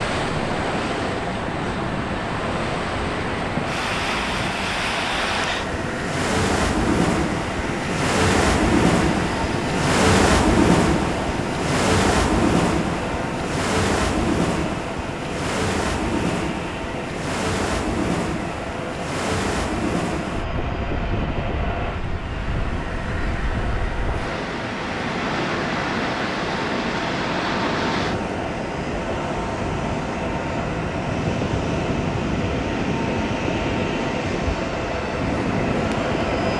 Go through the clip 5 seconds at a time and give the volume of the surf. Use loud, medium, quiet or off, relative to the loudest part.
medium, loud, loud, medium, medium, medium, medium, medium.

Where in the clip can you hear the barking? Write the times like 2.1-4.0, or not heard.
not heard.